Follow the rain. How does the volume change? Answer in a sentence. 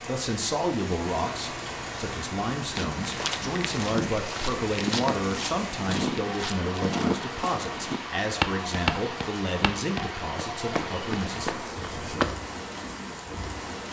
The loudness of the rain stays about the same.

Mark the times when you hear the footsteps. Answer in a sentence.
The footsteps can be heard from 2.8 to 12.3 s.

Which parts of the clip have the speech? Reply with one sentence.
The speech can be heard from 0.1 to 11.5 s.